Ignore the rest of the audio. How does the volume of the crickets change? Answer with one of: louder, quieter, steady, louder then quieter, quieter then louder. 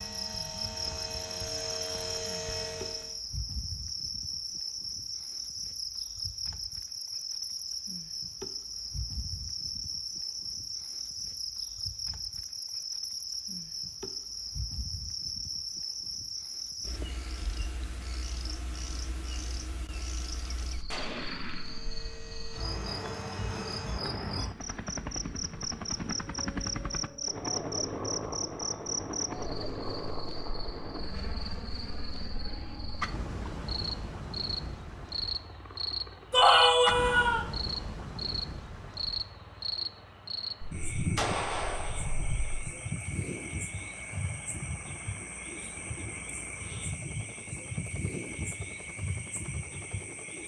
steady.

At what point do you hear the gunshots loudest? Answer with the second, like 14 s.
41 s.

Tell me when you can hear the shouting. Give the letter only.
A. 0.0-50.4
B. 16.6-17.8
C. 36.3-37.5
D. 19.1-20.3
C.